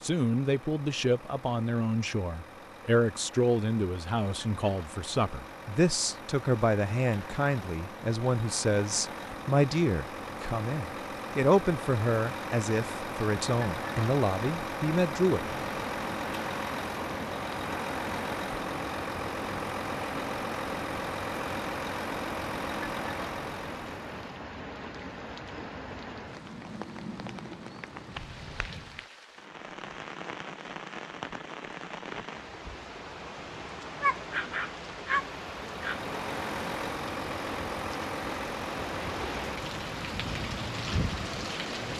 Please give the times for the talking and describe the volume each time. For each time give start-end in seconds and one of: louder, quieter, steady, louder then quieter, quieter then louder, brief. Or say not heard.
0.0-15.4 steady.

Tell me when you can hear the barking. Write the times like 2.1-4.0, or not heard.
34.0-36.0.